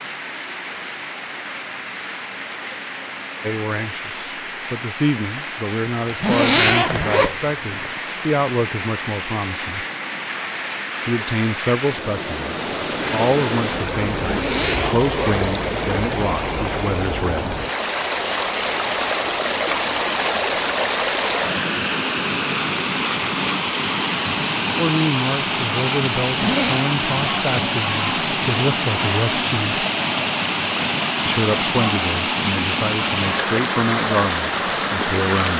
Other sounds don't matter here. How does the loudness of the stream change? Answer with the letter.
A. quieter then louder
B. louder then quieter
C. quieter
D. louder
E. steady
D.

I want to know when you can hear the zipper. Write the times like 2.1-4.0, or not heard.
6.0-7.9, 14.2-15.4, 26.2-26.9.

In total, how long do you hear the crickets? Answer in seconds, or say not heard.
not heard.